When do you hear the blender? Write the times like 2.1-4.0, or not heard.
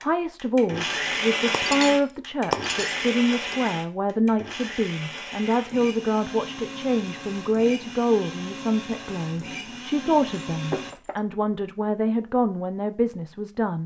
0.0-10.9.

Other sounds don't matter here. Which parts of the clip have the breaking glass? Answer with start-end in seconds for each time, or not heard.
1.5-3.5, 10.5-11.2.